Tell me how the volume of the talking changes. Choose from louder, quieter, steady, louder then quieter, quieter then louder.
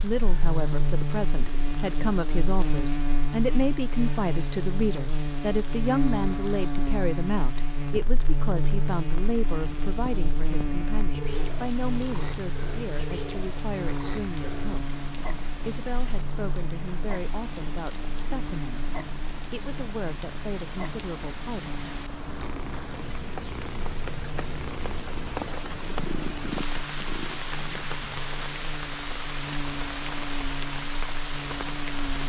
quieter.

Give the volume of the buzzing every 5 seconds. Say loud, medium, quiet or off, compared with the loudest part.
loud, loud, loud, medium, medium, medium, medium.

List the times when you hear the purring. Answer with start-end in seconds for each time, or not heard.
9.6-27.9.